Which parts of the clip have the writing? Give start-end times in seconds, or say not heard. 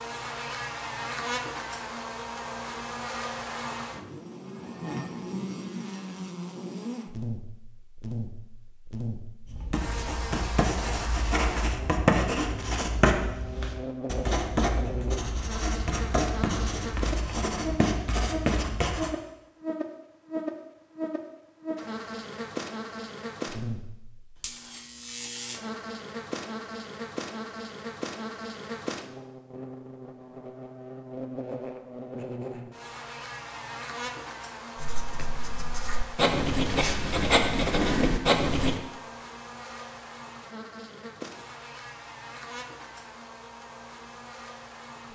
9.4-19.1, 34.8-38.8.